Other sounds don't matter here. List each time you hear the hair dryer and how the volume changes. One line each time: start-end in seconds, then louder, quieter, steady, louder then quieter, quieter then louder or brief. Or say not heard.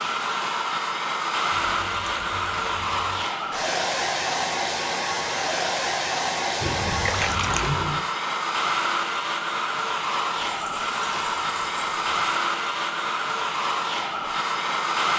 0.0-15.1 steady.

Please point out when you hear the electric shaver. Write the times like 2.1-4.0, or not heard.
not heard.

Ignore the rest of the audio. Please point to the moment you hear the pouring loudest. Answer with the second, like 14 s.
8 s.